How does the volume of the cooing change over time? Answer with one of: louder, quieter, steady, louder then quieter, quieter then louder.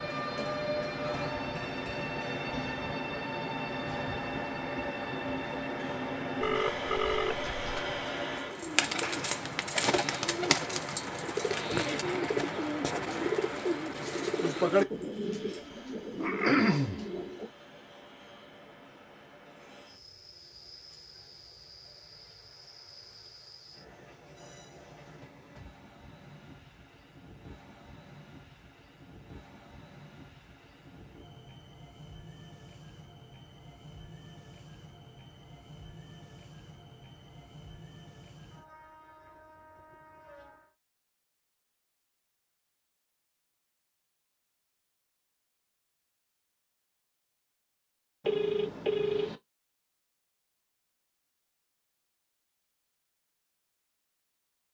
steady.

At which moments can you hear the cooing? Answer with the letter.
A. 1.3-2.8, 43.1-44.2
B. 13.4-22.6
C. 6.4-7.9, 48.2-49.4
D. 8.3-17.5
D.